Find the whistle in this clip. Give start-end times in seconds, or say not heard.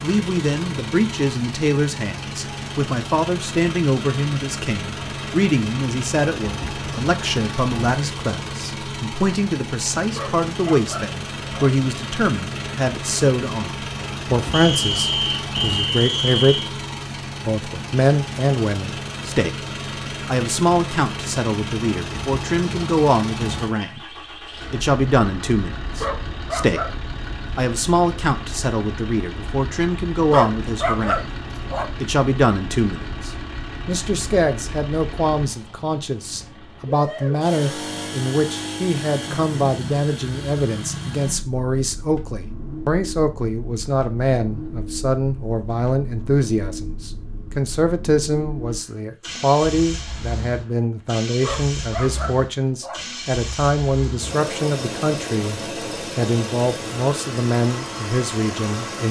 14.5-16.7.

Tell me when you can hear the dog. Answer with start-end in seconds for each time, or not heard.
10.1-11.7, 25.9-27.0, 30.3-31.9, 51.4-53.0.